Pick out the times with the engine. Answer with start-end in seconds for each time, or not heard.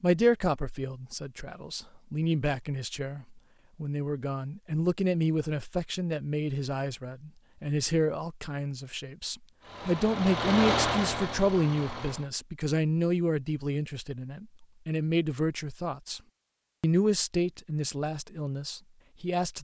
9.6-12.3.